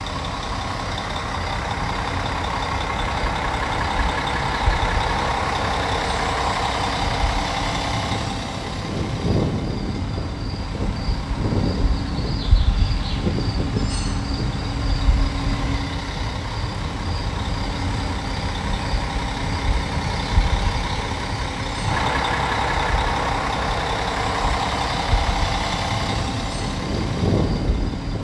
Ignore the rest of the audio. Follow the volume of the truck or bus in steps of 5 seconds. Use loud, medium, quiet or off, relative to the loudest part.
loud, loud, medium, medium, loud, loud.